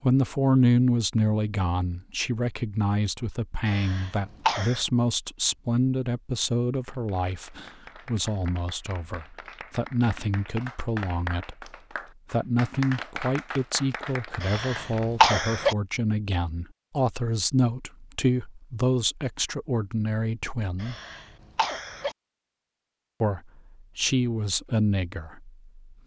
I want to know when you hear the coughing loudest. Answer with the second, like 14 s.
15 s.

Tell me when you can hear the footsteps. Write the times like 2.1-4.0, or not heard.
not heard.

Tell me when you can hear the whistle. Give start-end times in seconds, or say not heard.
not heard.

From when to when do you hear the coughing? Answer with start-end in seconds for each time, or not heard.
3.6-4.8, 14.4-15.8, 20.8-22.1.